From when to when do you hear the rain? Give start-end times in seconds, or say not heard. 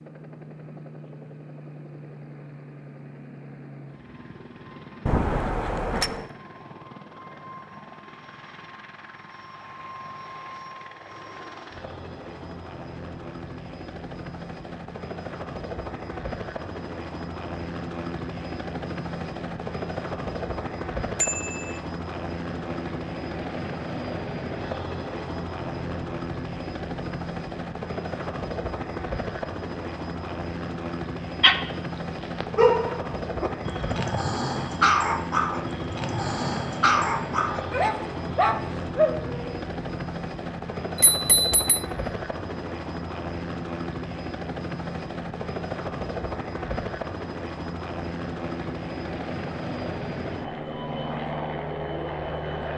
not heard.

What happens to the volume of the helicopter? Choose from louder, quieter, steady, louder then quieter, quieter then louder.
louder.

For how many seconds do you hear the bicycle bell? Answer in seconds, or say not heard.
3 s.